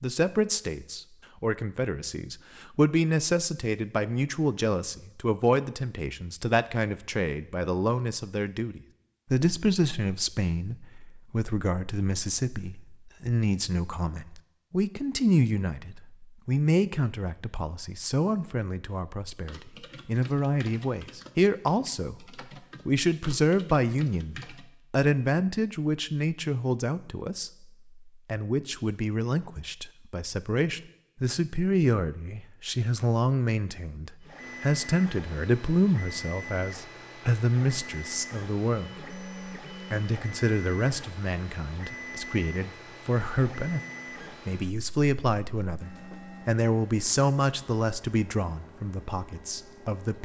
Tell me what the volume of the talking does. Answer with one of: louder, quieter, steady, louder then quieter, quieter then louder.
steady.